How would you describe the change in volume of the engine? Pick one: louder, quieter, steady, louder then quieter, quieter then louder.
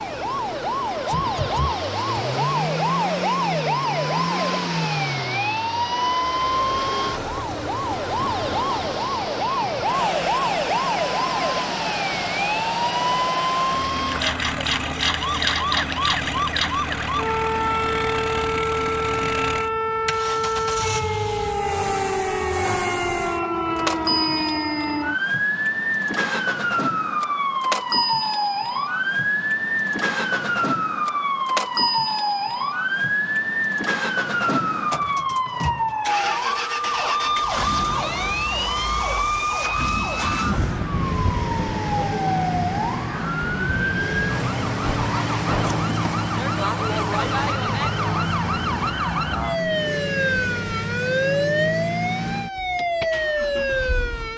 steady.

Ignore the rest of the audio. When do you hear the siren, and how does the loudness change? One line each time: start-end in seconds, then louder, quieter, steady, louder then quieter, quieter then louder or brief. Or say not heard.
0.0-54.3 steady.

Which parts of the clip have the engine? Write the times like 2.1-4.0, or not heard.
0.0-54.3.